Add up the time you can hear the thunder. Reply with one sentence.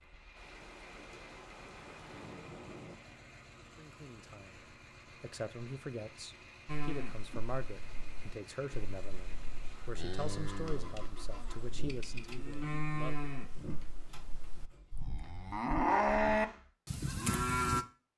You can hear the thunder for 3 seconds altogether.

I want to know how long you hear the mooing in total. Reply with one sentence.
The mooing can be heard for 11 seconds in total.